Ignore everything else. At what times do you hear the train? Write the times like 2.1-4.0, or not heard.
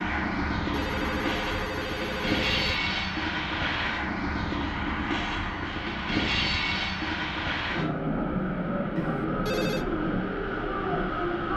0.0-11.5.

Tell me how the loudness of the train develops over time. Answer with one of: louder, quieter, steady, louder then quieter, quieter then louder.
steady.